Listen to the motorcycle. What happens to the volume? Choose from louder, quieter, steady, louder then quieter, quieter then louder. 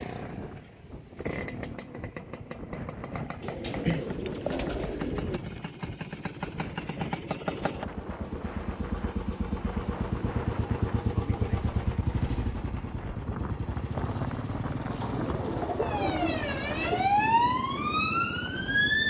louder then quieter.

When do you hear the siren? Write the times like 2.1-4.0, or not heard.
15.8-19.0.